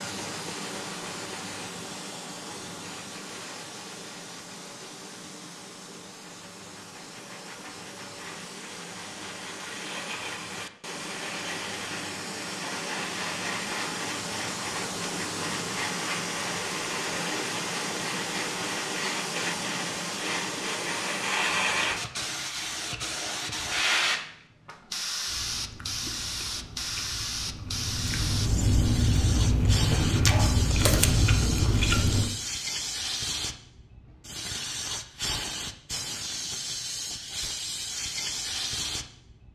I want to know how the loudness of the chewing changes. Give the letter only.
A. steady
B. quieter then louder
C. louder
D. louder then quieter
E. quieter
C.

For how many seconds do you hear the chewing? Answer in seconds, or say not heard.
7 s.